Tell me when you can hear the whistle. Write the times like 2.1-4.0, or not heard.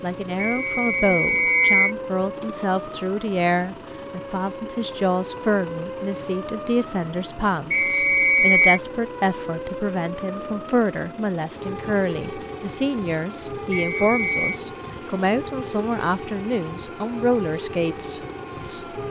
0.3-1.9, 7.7-8.8, 13.7-14.6.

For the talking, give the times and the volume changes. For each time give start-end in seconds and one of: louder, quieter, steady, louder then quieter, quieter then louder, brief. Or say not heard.
0.0-18.9 steady.